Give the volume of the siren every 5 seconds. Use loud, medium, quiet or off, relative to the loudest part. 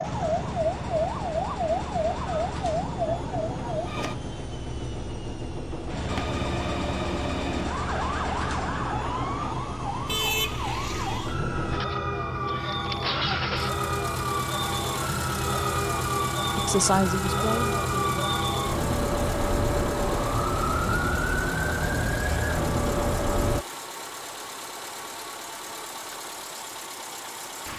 loud, medium, loud, loud, loud, off.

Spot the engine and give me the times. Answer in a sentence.
The engine can be heard from 0.0 to 27.7 s.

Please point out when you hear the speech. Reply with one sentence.
You can hear the speech from 16.6 to 18.2 s.